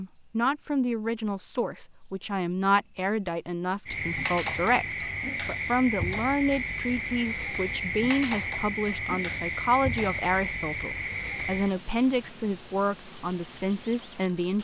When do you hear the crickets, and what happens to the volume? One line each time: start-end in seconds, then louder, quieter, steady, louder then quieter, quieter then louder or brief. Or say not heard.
0.0-14.5 steady.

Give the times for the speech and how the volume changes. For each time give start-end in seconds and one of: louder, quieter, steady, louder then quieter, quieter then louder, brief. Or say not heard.
0.0-14.5 steady.